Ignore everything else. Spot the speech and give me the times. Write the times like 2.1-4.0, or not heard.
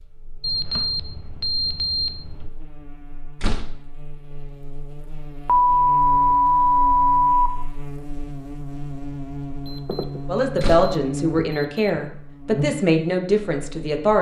10.2-14.1.